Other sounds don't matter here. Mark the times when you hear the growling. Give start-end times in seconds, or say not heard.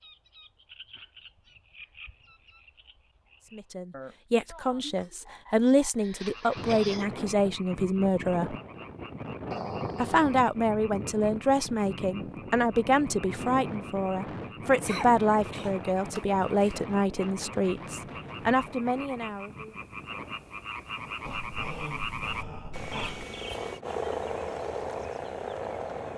9.5-10.4, 21.2-23.2.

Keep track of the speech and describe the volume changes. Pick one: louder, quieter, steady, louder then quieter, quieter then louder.
steady.